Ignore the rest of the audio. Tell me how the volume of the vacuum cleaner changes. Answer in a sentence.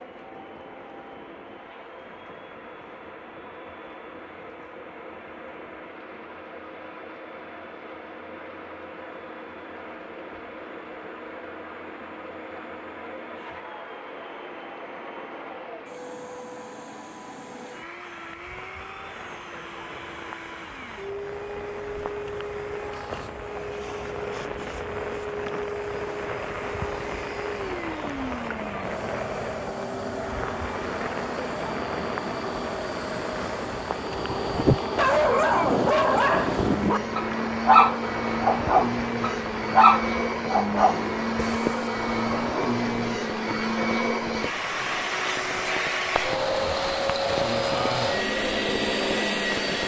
The loudness of the vacuum cleaner goes up.